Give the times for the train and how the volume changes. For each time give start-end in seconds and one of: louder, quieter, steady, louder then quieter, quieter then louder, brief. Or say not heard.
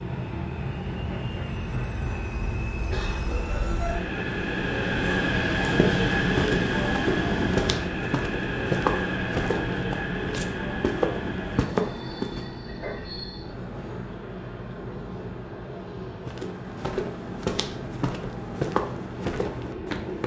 0.0-20.2 louder then quieter.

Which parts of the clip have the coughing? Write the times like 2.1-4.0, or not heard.
2.7-3.8.